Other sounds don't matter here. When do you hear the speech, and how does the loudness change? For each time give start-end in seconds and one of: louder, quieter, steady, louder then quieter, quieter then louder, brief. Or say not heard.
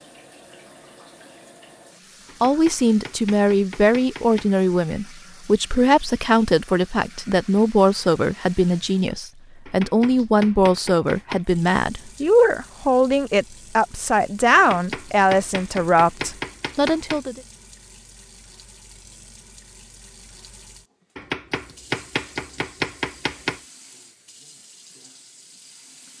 2.4-17.4 steady.